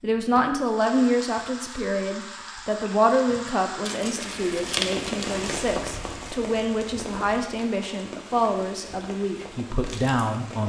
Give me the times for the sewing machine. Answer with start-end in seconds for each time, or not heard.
not heard.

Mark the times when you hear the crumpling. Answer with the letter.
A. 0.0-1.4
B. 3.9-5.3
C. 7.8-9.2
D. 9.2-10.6
B.